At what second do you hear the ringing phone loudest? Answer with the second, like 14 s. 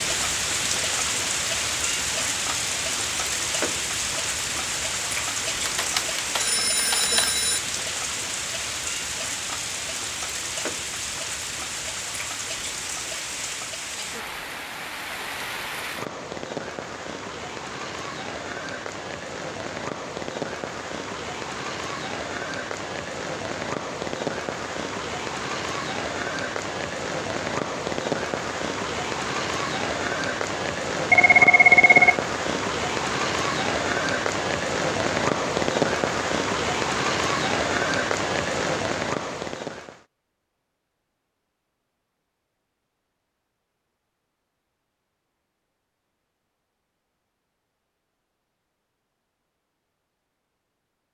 32 s.